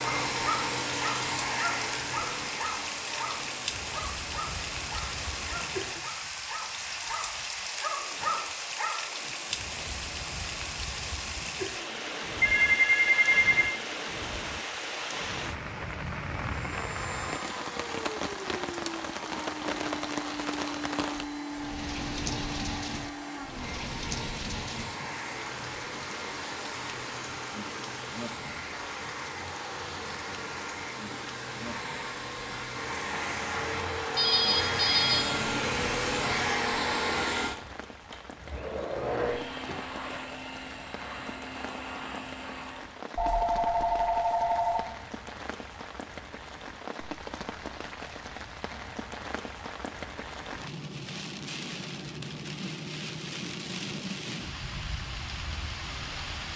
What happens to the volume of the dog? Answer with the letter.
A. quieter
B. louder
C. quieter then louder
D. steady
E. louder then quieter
C.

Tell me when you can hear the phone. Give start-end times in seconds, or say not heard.
12.4-13.8, 34.1-35.3, 43.1-44.9.